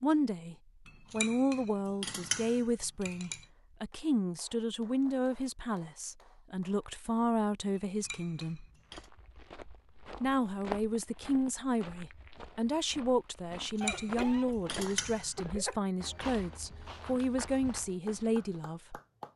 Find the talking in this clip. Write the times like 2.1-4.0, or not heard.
0.0-8.7, 10.2-19.0.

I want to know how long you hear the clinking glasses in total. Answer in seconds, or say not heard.
6 s.